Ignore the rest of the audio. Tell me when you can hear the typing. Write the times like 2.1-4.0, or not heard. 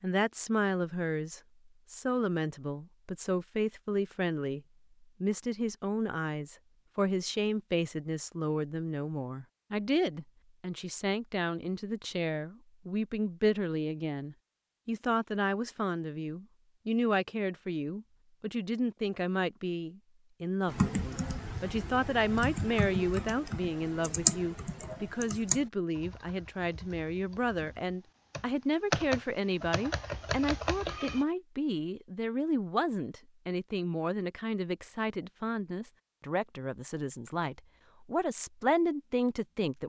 20.6-31.2.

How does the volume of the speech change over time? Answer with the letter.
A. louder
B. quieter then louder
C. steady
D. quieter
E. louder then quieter
C.